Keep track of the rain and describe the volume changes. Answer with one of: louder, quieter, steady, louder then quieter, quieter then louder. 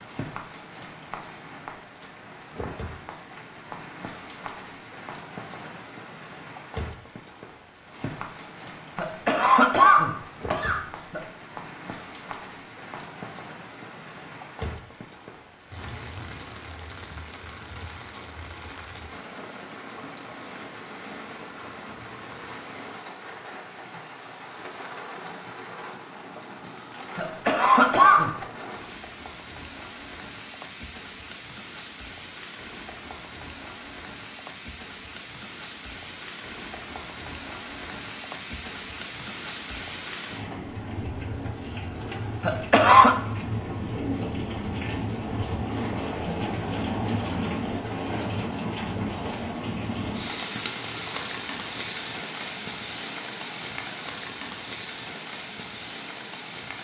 louder.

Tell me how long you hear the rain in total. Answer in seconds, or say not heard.
57 s.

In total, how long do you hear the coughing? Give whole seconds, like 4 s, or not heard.
4 s.